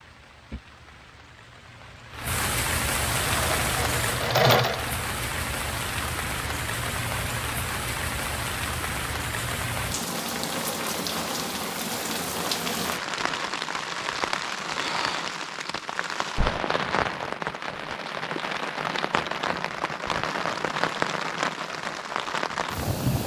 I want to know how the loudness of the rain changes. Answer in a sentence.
The loudness of the rain stays about the same.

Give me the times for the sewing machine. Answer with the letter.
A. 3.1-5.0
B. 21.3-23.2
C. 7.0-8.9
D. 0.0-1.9
A.